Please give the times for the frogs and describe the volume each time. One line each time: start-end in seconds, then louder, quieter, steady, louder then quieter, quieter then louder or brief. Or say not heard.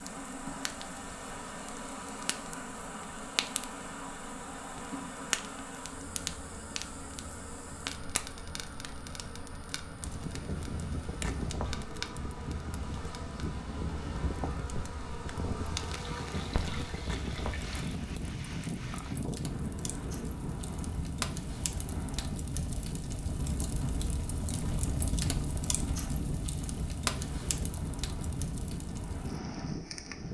not heard.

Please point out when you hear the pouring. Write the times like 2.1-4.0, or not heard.
15.9-18.0.